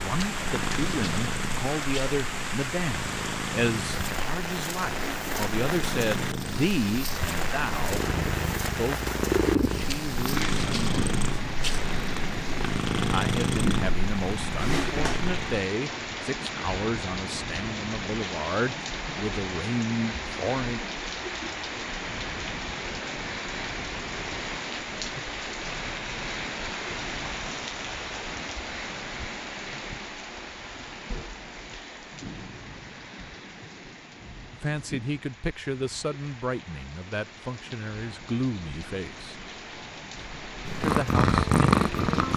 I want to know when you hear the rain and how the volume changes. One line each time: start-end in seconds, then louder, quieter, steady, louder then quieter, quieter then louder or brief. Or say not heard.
0.0-42.3 quieter.